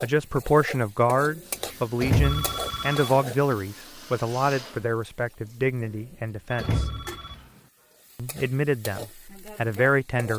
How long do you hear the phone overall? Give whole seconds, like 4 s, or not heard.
2 s.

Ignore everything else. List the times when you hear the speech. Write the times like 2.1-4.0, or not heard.
0.0-6.8, 8.2-10.3.